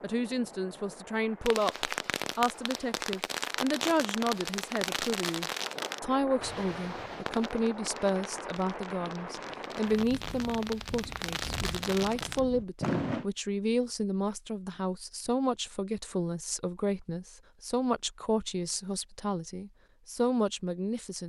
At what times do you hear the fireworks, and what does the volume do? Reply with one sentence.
The fireworks can be heard from 1.4 to 13.2 s, getting quieter then louder.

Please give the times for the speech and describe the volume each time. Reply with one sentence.
The speech can be heard from 0.0 to 21.2 s, at a steady volume.